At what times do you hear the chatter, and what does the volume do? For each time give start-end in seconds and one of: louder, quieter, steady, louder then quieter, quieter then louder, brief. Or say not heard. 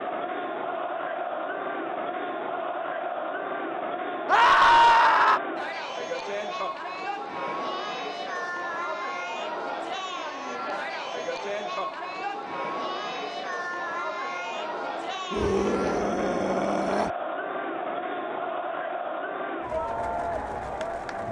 0.0-21.2 steady.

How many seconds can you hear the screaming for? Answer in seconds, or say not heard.
3 s.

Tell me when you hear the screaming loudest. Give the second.
5 s.